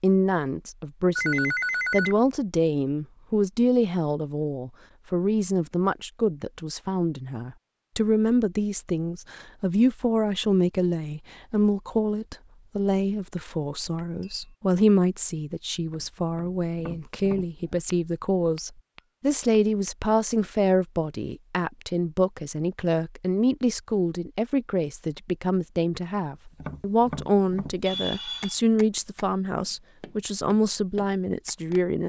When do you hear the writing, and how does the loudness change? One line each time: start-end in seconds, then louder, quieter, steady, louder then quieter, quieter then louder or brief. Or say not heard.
not heard.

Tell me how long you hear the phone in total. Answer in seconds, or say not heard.
2 s.